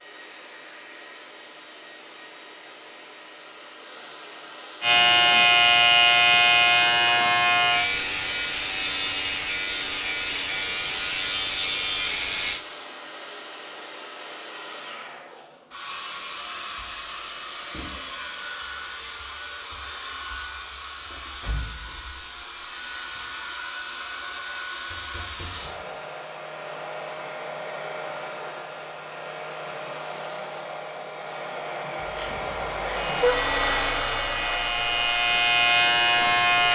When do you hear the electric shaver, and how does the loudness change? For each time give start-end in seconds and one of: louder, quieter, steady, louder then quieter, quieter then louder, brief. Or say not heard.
4.8-12.6 quieter
32.1-36.7 louder.